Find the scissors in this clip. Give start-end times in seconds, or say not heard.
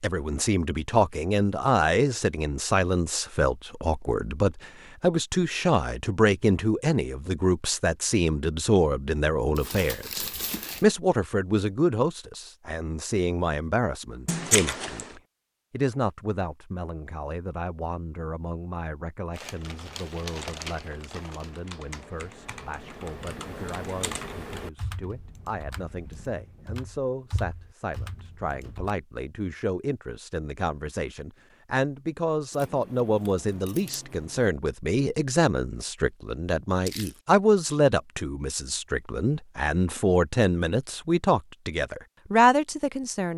14.2-15.2, 32.5-34.5.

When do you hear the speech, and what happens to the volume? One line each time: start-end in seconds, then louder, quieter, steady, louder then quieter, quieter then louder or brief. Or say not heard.
0.0-43.3 quieter then louder.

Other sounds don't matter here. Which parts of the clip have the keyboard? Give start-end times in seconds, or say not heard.
19.4-28.9.